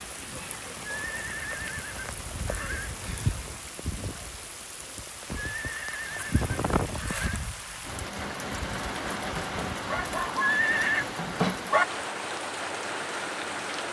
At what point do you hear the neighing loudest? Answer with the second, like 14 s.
11 s.